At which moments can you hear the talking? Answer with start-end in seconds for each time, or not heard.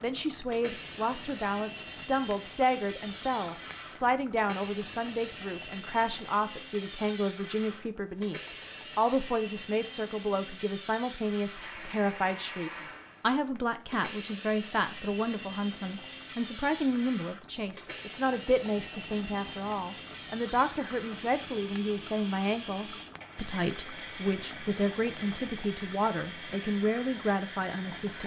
0.0-28.2.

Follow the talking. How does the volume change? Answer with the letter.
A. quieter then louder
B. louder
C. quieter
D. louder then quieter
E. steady
E.